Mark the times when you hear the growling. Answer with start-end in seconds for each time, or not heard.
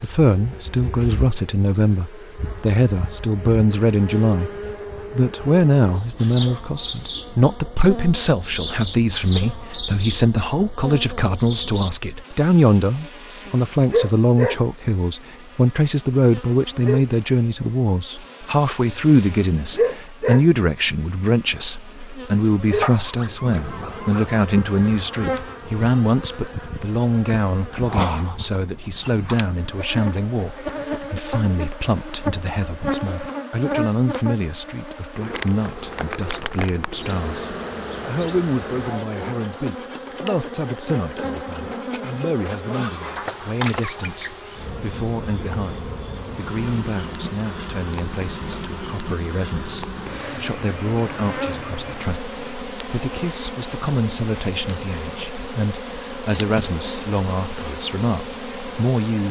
22.8-24.4.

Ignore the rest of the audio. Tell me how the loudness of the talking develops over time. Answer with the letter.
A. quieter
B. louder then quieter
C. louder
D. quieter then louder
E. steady
A.